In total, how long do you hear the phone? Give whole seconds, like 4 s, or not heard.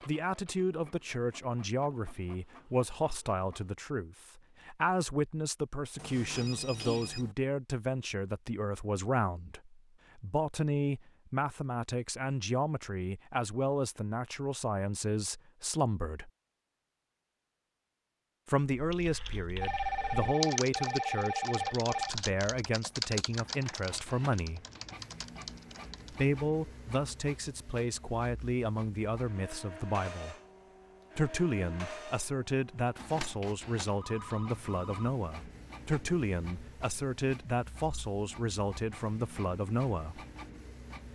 5 s.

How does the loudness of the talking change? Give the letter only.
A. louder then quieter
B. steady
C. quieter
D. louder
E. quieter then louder
B.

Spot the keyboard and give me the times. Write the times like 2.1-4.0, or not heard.
18.7-26.2.